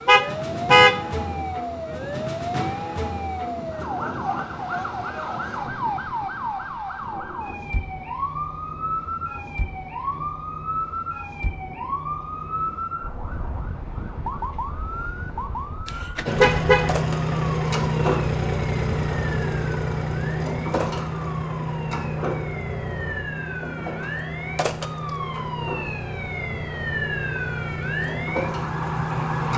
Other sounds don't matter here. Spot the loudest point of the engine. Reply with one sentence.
The loudest moment of the engine is at 18 seconds.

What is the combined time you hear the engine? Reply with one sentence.
You can hear the engine for 13 seconds altogether.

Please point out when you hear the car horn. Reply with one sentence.
You can hear the car horn from 0.1 to 1.0 s and from 15.8 to 16.9 s.